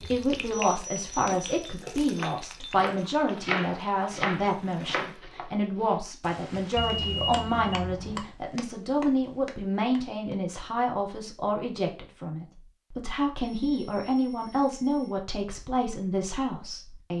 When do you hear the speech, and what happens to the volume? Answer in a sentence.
You can hear the speech from 0.1 to 17.1 s, at a steady volume.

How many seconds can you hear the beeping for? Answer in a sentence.
You can hear the beeping for 4 seconds altogether.